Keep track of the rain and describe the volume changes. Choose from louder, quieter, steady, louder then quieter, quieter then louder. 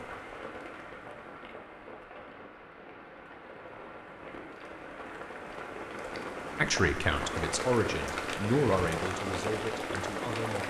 louder.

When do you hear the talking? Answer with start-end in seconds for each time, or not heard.
6.5-10.6.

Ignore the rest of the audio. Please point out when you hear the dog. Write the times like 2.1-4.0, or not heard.
not heard.